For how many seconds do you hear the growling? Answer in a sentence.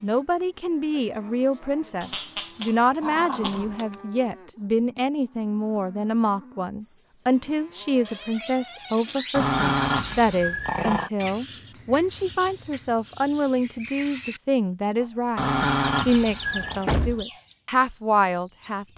You can hear the growling for 5 seconds altogether.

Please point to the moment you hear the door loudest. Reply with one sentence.
The volume of the door peaks at 17 seconds.